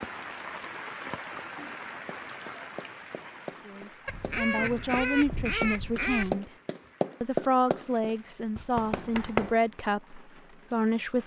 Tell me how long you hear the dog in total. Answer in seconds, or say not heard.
not heard.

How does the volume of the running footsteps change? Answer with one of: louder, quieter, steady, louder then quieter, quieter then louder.
louder then quieter.